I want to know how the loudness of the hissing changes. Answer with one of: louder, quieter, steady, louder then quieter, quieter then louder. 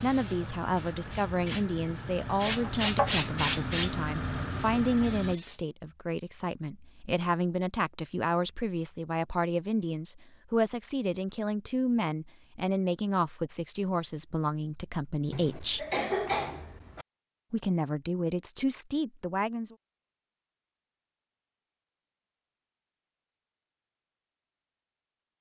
louder then quieter.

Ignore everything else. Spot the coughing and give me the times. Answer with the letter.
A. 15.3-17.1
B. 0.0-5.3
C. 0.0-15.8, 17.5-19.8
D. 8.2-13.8
A.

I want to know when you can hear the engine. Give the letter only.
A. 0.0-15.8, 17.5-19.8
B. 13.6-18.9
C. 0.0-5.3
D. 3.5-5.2
C.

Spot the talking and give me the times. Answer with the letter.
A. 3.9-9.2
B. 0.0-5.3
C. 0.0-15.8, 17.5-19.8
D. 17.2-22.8
C.